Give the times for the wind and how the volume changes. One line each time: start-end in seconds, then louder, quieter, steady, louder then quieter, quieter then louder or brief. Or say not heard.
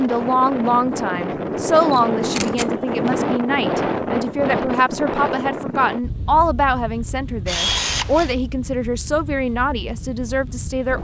0.0-10.9 quieter.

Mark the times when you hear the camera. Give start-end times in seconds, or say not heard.
1.8-3.1, 7.5-8.3.